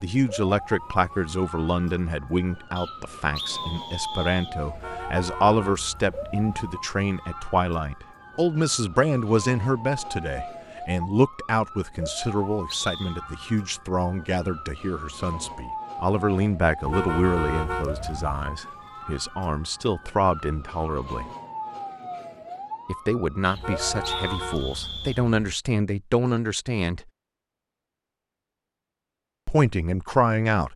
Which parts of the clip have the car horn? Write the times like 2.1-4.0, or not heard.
4.7-6.5, 16.8-18.5, 23.6-25.6.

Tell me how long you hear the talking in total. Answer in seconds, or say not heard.
27 s.